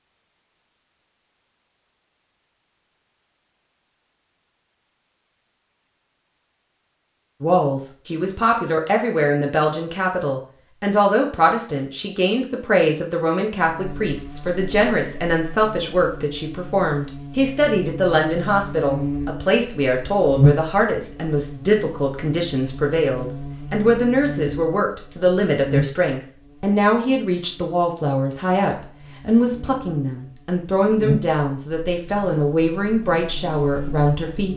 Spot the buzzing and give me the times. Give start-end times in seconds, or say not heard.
13.6-34.5.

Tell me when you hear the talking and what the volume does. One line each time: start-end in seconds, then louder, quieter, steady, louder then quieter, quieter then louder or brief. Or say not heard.
7.4-34.5 steady.